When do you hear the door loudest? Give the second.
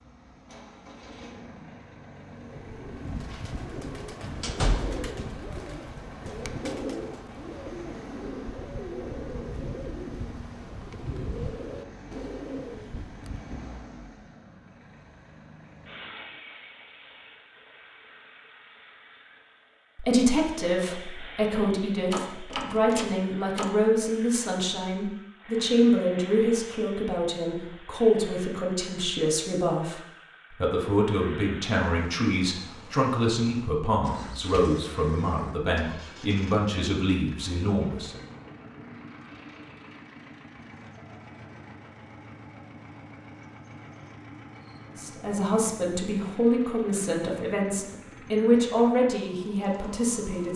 5 s.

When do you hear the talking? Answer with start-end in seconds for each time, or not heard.
19.9-38.2, 45.0-50.5.